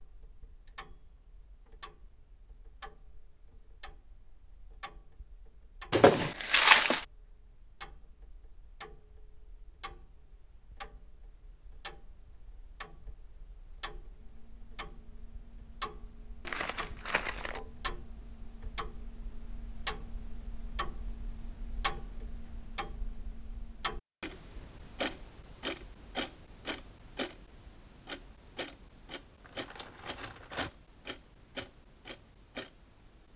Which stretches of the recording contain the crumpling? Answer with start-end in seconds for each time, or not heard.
5.9-7.0, 16.4-17.6, 29.4-30.7.